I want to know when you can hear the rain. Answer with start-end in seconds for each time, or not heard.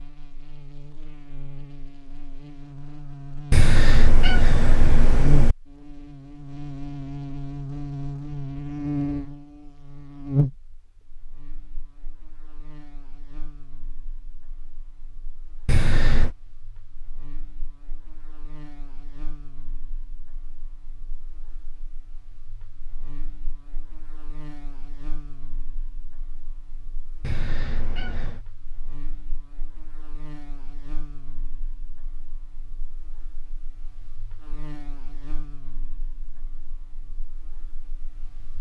not heard.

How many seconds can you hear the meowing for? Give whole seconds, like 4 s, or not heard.
4 s.